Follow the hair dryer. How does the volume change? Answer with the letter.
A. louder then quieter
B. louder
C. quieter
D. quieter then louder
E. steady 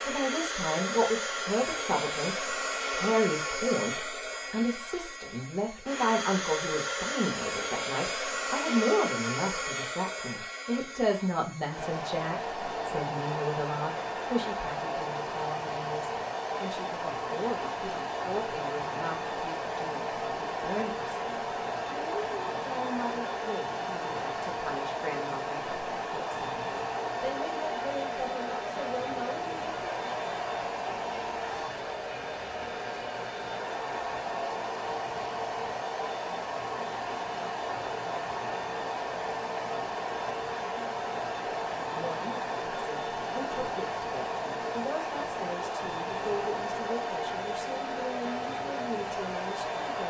E.